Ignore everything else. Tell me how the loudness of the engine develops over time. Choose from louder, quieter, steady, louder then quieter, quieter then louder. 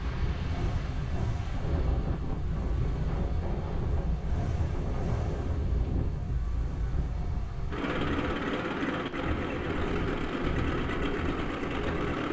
louder.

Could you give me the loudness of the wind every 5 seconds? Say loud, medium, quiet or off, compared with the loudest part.
loud, loud, medium.